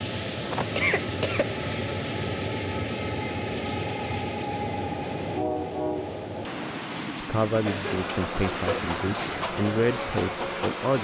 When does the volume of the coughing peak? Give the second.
1 s.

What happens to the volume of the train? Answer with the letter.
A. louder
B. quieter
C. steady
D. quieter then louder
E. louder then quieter
C.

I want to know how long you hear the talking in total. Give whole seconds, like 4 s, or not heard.
4 s.